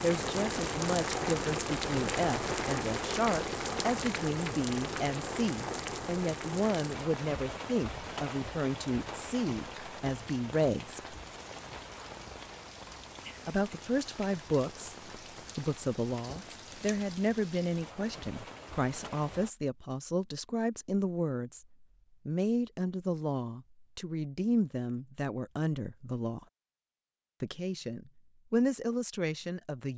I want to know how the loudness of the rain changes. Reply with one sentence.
The volume of the rain goes down.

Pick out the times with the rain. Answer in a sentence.
You can hear the rain from 0.0 to 19.6 s.